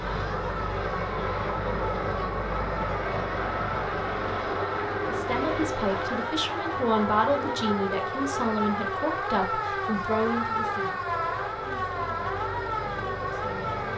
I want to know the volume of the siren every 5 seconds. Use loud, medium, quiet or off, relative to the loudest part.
medium, loud, loud.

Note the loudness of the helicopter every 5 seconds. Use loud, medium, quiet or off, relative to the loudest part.
loud, loud, medium.